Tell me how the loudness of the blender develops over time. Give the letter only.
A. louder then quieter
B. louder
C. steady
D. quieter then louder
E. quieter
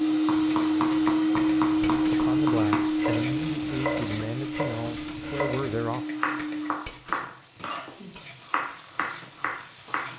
E.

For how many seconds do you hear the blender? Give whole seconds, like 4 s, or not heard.
7 s.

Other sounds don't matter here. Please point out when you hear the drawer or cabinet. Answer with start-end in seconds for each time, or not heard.
not heard.